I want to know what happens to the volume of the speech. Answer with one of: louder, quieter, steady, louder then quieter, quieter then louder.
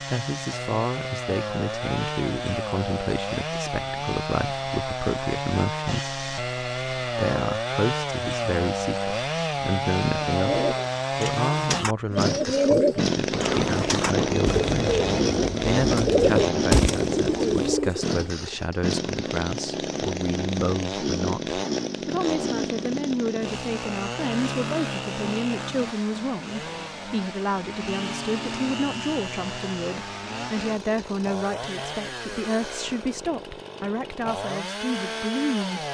steady.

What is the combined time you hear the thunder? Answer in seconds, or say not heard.
2 s.